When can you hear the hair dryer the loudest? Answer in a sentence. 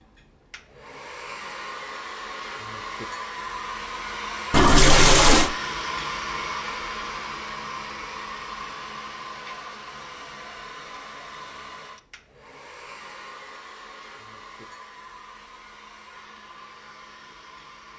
The volume of the hair dryer peaks at 6 seconds.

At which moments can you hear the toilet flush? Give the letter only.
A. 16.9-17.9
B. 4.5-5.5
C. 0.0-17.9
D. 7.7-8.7
B.